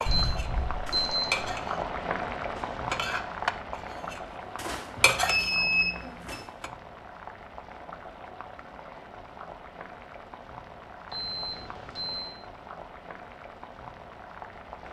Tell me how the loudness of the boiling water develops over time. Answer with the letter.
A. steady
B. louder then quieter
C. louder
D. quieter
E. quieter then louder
D.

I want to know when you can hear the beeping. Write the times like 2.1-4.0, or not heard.
0.1-1.4, 5.0-6.3, 11.1-12.3.